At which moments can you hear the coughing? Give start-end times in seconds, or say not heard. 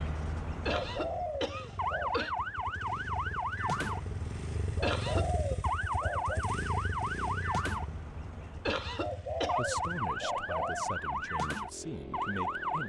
0.7-2.3, 4.8-5.2, 8.7-9.6.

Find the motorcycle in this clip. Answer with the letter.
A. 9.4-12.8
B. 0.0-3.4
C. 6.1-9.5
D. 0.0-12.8
D.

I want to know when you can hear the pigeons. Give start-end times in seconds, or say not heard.
0.7-2.3, 4.8-6.5, 8.9-10.9.